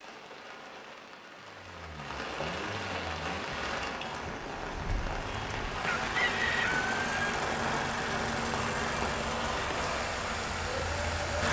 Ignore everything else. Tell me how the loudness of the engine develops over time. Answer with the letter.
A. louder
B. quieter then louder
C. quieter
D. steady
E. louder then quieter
A.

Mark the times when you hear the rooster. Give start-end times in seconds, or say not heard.
5.8-7.3.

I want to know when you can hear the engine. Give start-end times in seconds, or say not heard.
1.4-11.4.